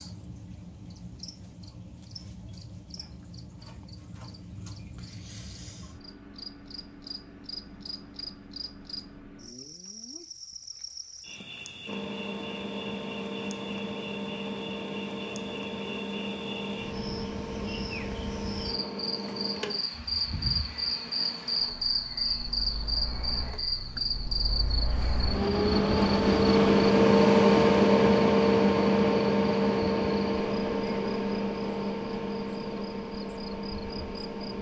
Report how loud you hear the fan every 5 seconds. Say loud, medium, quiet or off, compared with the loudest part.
off, off, quiet, quiet, quiet, loud, medium.